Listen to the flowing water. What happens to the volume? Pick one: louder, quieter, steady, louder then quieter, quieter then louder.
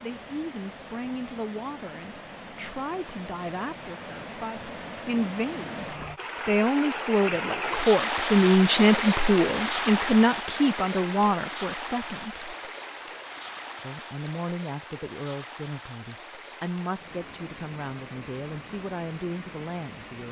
louder then quieter.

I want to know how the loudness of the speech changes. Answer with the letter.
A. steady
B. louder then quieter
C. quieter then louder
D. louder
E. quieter
B.